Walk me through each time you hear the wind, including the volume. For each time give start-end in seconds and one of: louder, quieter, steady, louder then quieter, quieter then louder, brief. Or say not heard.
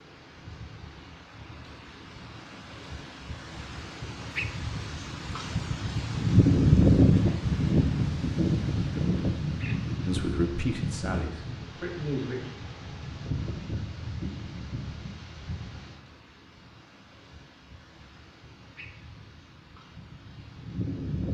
0.0-21.2 louder then quieter.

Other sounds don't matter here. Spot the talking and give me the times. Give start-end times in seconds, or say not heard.
10.1-12.5.